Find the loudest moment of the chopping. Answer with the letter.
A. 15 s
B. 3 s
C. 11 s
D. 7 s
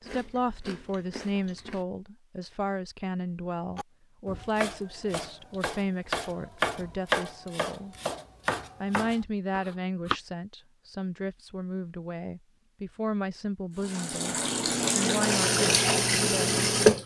D.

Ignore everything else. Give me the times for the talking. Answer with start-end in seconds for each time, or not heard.
0.0-8.0, 8.8-16.6.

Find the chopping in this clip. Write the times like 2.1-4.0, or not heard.
3.7-10.2.